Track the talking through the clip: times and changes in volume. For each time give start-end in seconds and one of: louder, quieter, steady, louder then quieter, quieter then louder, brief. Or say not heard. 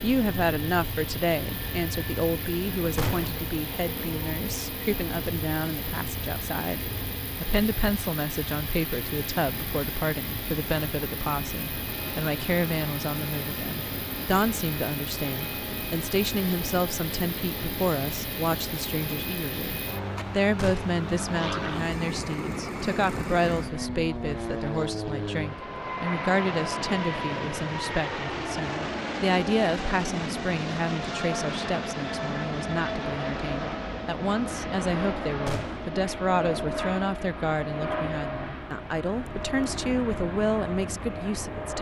0.0-41.7 steady.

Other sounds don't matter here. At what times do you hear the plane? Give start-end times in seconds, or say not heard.
0.0-41.7.